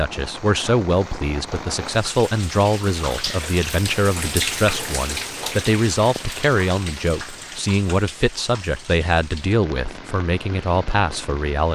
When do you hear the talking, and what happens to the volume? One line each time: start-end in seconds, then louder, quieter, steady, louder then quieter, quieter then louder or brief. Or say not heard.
0.0-11.6 steady.